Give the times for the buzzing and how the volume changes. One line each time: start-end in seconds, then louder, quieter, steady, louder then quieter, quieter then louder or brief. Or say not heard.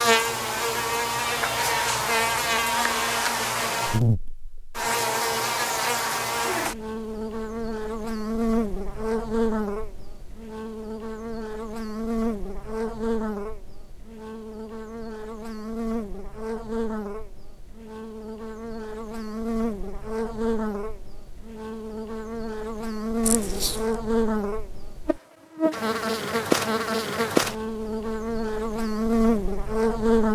0.0-30.3 quieter then louder.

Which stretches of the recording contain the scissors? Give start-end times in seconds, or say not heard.
23.2-23.9.